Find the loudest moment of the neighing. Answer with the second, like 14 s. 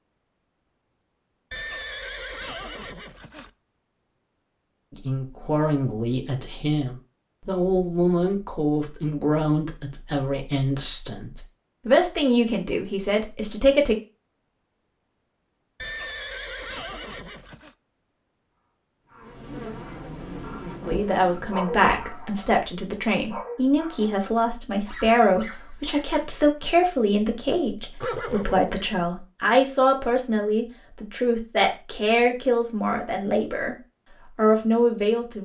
28 s.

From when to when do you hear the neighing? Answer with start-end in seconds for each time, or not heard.
1.5-3.5, 15.8-17.8, 28.0-29.1.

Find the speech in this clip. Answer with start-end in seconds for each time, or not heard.
4.9-13.9, 20.9-33.8, 34.4-35.4.